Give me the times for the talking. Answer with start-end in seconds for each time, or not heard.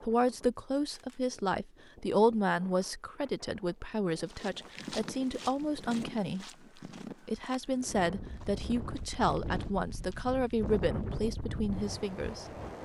0.1-6.5, 7.2-12.4.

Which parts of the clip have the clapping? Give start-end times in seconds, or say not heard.
not heard.